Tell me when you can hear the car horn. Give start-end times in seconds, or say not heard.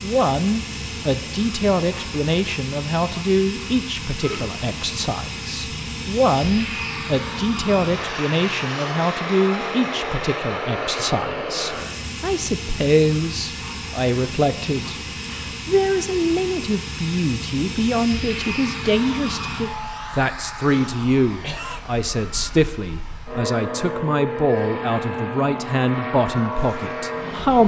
not heard.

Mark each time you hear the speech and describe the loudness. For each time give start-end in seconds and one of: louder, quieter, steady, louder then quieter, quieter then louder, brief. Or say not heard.
0.0-27.6 steady.